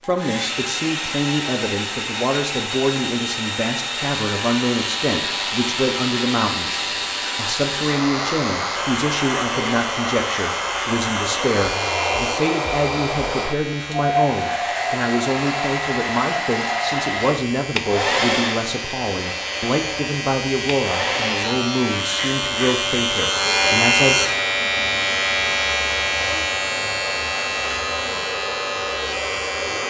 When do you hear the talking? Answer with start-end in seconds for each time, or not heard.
0.1-24.1.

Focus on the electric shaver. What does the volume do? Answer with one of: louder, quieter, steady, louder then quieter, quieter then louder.
louder.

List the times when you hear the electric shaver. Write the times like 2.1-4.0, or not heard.
4.0-29.8.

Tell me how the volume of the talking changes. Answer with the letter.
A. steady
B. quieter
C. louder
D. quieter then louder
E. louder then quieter
A.